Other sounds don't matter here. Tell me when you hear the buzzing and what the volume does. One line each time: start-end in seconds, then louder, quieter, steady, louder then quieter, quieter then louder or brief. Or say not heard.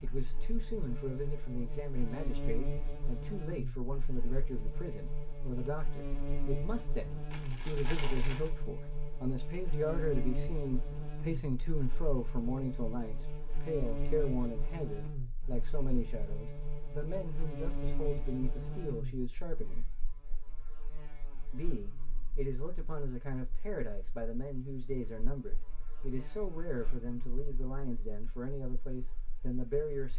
0.0-30.1 quieter.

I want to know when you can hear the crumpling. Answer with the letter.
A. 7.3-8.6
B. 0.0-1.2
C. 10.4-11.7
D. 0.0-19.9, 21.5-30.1
A.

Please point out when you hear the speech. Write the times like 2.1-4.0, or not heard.
0.0-19.9, 21.5-30.1.